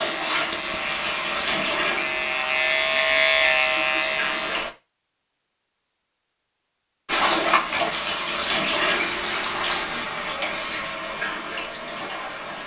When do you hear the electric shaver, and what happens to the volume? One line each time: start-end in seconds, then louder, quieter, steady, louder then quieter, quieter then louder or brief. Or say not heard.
0.0-4.7 louder.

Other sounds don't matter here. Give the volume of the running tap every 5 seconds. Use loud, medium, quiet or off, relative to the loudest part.
medium, loud, medium.